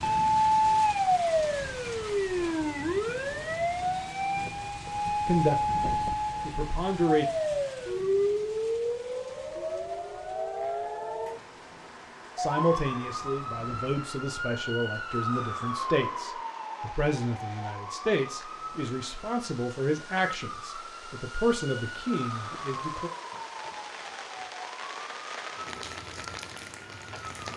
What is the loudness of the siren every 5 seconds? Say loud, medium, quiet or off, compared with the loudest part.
loud, loud, medium, medium, quiet, quiet.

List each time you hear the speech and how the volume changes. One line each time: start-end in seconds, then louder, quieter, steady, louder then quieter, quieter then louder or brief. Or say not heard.
5.2-7.2 brief
12.3-23.1 steady.